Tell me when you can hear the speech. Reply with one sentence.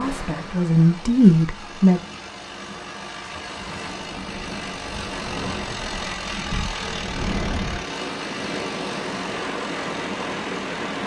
The speech can be heard from 0.0 to 2.0 s.